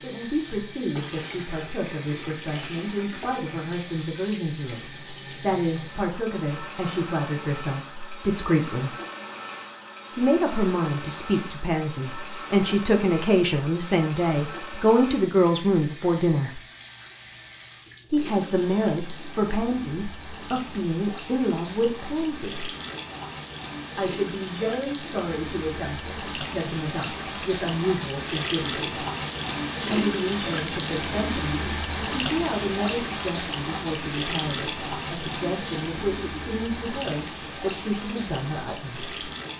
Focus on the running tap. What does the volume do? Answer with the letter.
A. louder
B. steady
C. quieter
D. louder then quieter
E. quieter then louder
A.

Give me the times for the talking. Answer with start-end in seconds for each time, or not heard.
0.0-8.9, 10.1-16.6, 18.1-22.7, 23.9-29.1, 29.9-39.2.